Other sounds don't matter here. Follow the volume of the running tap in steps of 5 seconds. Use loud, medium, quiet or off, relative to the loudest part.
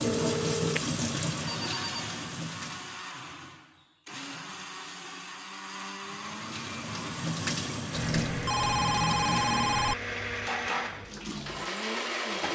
loud, loud, medium.